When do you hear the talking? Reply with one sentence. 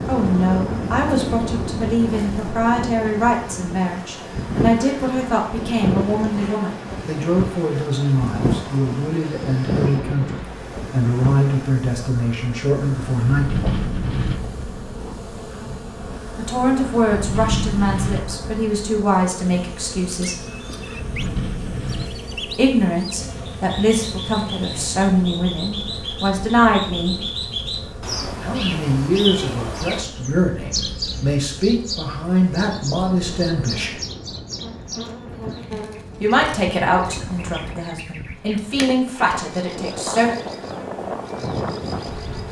You can hear the talking from 0.1 to 13.8 s, from 16.4 to 20.4 s, from 22.6 to 27.1 s, from 28.4 to 34.0 s and from 36.2 to 40.4 s.